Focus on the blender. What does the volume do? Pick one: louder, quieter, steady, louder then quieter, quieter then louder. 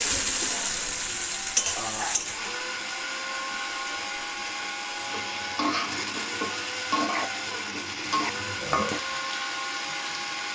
louder.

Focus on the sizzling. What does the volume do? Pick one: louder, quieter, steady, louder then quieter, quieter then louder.
quieter then louder.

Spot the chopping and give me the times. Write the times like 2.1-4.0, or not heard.
not heard.